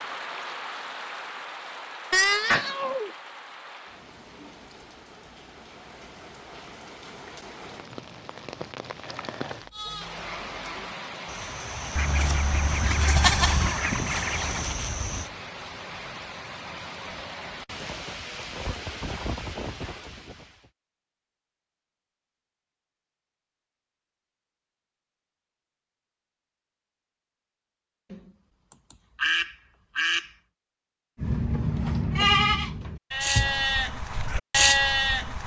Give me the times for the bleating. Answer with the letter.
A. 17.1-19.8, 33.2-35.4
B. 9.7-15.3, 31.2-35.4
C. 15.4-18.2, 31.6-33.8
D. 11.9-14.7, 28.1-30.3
B.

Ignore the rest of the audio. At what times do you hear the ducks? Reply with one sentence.
The ducks can be heard from 11.9 to 14.7 s and from 28.1 to 30.3 s.